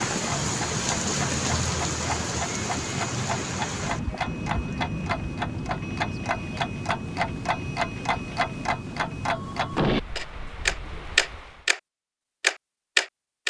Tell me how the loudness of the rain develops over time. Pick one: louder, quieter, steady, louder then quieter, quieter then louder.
quieter.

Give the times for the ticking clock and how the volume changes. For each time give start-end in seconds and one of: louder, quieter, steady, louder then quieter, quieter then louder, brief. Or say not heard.
0.1-11.8 louder
12.4-13.4 brief.